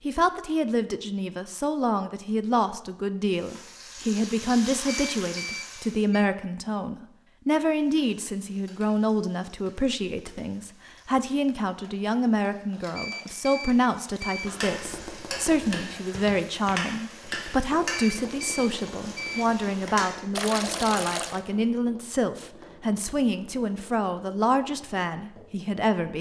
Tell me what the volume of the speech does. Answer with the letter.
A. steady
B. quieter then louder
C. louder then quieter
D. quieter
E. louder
A.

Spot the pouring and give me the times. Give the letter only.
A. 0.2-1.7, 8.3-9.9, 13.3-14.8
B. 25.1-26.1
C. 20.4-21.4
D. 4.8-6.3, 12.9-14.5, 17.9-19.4
C.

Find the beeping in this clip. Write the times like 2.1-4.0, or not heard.
4.8-6.3, 12.9-14.5, 17.9-19.4.